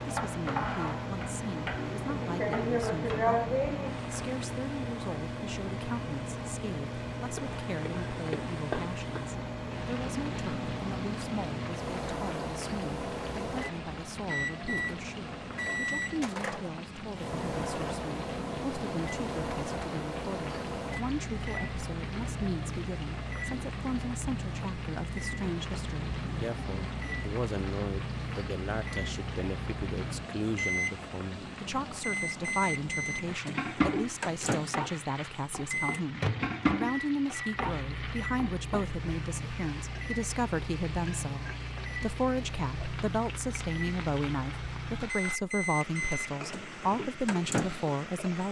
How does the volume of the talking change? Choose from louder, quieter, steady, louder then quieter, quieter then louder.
louder.